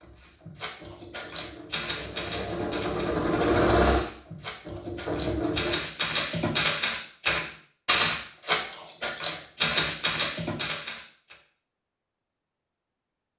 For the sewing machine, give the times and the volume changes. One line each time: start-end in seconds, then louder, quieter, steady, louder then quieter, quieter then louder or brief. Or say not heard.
0.0-5.8 louder then quieter.